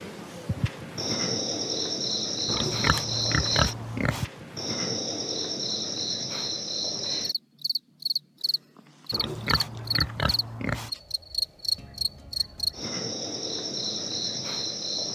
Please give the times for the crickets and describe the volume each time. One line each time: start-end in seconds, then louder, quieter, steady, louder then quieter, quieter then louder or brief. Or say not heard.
0.0-15.1 steady.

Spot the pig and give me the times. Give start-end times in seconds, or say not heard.
2.5-4.2, 9.1-10.9.